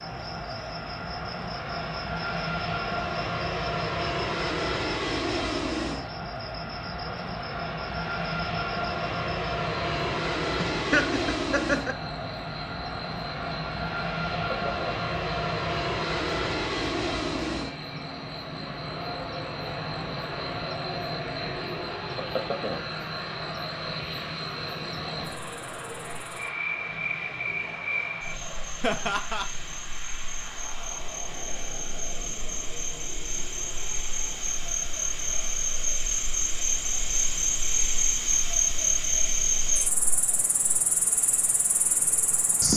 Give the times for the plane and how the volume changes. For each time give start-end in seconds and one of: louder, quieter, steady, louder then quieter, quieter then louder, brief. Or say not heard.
0.0-42.7 quieter.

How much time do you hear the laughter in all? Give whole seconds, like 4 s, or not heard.
2 s.